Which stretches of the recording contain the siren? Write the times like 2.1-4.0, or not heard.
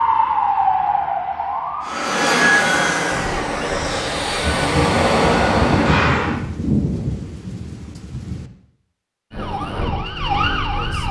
0.0-4.5, 9.3-11.0.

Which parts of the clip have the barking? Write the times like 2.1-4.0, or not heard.
not heard.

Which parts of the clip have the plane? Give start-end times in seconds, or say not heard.
1.8-6.3.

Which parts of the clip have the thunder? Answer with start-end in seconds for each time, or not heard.
4.4-8.5.